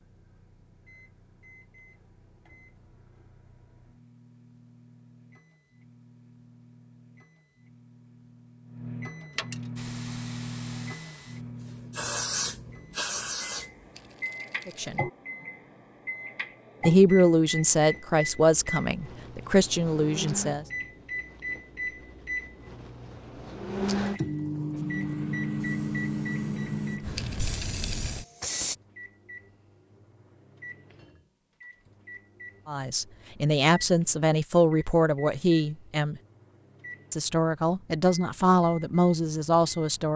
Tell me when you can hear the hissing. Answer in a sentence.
You can hear the hissing from 9.8 to 14.1 s and from 24.7 to 28.8 s.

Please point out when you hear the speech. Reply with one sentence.
You can hear the speech from 14.7 to 15.1 s, from 16.9 to 20.6 s, from 32.6 to 36.2 s and from 37.1 to 40.1 s.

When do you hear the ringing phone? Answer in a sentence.
You can't hear the ringing phone here.